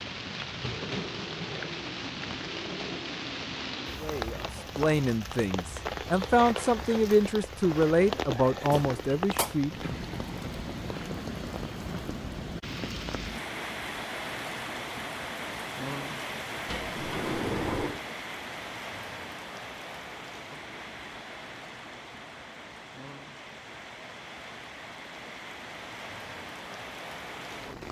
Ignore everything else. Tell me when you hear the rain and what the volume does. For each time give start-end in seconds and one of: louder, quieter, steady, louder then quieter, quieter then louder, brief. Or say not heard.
0.0-27.8 quieter.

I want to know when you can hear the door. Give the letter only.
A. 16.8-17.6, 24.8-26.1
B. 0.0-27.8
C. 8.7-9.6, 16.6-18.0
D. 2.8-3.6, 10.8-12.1
C.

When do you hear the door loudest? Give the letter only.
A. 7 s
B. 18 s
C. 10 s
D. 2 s
B.